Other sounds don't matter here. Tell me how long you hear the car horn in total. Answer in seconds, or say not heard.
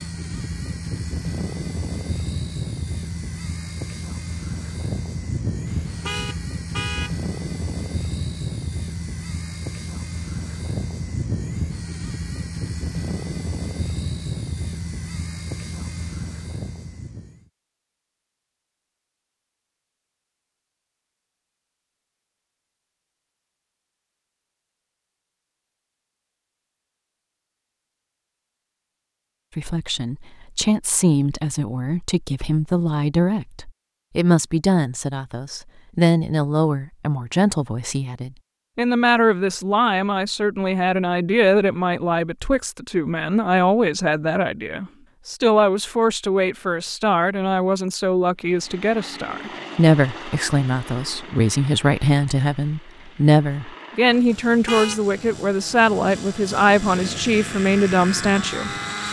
2 s.